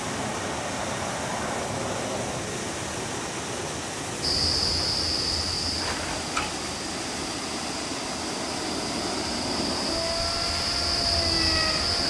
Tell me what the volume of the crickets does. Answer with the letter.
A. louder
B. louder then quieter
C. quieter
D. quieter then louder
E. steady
D.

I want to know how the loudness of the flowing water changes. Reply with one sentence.
The volume of the flowing water stays about the same.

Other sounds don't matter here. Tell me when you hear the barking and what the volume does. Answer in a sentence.
You can't hear the barking here.